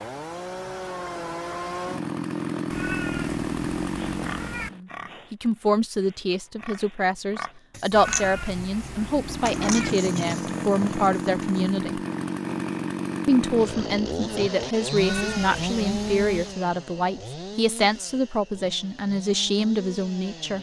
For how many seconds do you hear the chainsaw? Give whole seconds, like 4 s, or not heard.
16 s.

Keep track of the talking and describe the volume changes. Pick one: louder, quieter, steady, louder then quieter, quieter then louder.
steady.